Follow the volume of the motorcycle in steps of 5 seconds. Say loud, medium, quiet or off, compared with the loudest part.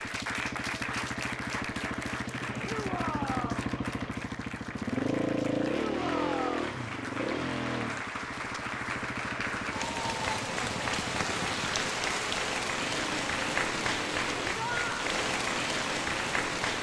loud, loud, medium, medium.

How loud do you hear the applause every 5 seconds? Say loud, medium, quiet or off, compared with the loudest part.
medium, medium, loud, loud.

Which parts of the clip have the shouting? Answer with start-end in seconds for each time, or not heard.
2.6-3.7, 5.7-6.6, 14.6-15.1.